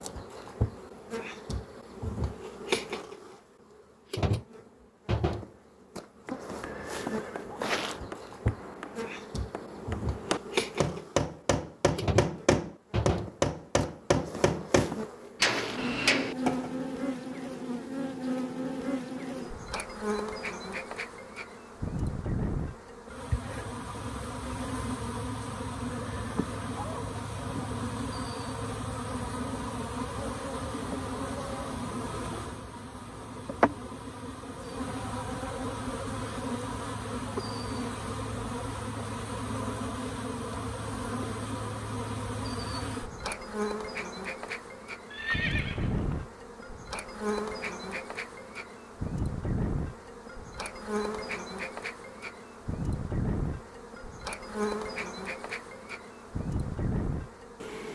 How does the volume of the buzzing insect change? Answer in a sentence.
The loudness of the buzzing insect stays about the same.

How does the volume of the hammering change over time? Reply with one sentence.
The loudness of the hammering goes up.